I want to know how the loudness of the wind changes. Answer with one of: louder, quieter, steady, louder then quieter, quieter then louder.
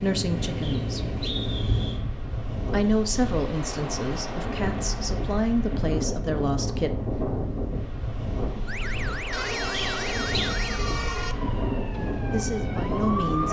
steady.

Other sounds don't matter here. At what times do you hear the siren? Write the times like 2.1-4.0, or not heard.
8.7-13.4.